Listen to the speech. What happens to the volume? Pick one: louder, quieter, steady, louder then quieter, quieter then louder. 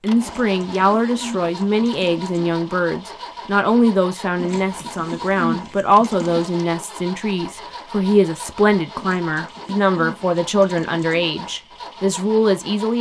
steady.